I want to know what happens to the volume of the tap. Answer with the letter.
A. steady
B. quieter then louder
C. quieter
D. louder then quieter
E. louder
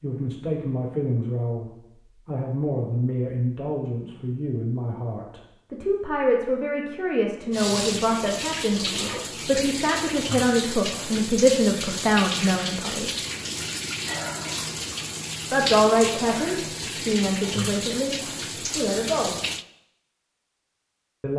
A.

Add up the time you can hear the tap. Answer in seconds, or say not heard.
12 s.